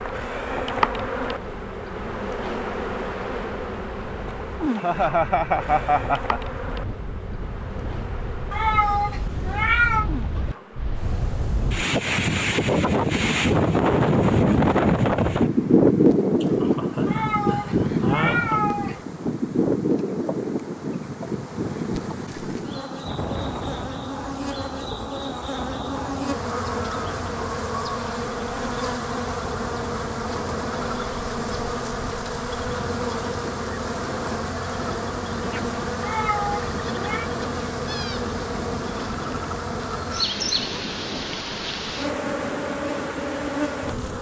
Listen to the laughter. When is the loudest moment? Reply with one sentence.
The volume of the laughter peaks at 5 seconds.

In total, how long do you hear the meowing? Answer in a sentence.
You can hear the meowing for 5 seconds altogether.